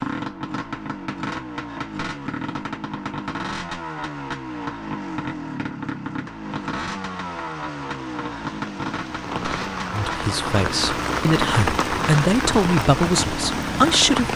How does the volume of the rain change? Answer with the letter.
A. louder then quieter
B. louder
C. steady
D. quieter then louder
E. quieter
B.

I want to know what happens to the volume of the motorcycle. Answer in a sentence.
The loudness of the motorcycle stays about the same.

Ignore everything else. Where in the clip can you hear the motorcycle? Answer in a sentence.
You can hear the motorcycle from 0.0 to 14.3 s.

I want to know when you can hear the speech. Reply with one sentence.
The speech can be heard from 9.9 to 14.3 s.